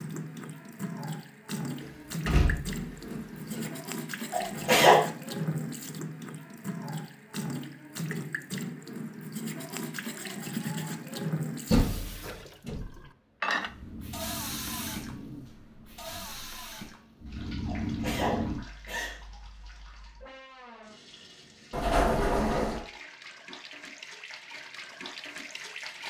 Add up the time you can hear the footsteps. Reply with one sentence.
You can't hear the footsteps here.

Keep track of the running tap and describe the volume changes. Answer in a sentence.
The volume of the running tap goes down.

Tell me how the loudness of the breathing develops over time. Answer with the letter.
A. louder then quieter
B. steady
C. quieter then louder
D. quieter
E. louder
C.